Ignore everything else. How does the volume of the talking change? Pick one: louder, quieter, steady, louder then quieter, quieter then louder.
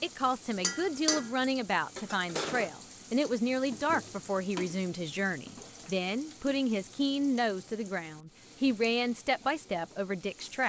steady.